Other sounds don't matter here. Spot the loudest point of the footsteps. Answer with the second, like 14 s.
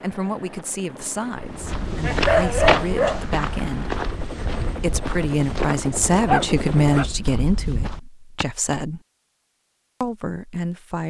3 s.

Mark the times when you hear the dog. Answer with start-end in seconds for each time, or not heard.
2.0-3.2, 6.2-7.8.